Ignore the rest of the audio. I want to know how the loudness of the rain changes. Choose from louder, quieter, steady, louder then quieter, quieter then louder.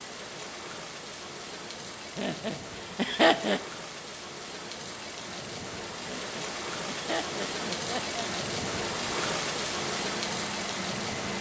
louder.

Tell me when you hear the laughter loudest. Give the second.
3 s.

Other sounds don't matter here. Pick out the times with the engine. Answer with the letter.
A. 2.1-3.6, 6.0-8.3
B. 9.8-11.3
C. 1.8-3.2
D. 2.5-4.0
B.